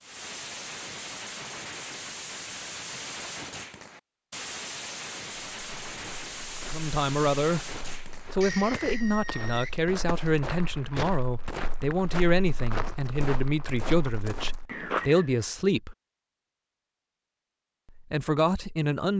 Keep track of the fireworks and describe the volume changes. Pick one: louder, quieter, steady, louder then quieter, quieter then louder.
steady.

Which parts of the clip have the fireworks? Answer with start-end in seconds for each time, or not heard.
0.0-10.4.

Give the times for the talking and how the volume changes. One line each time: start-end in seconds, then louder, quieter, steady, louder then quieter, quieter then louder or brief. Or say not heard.
6.7-7.7 brief
8.3-15.9 steady
17.9-19.1 brief.